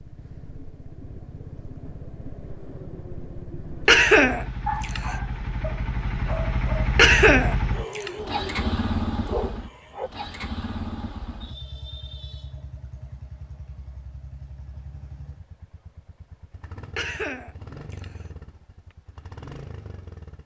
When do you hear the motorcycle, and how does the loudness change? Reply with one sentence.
You can hear the motorcycle from 0.0 to 20.4 s, getting louder then quieter.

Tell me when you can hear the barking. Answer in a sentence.
You can hear the barking from 4.7 to 6.9 s and from 7.7 to 10.1 s.